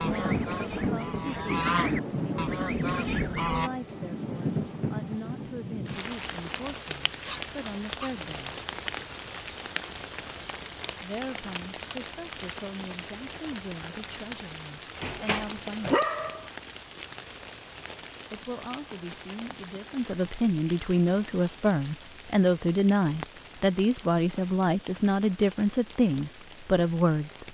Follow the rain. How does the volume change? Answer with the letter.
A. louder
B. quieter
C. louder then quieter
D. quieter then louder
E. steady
B.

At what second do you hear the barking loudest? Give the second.
16 s.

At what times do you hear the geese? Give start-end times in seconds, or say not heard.
0.0-3.7.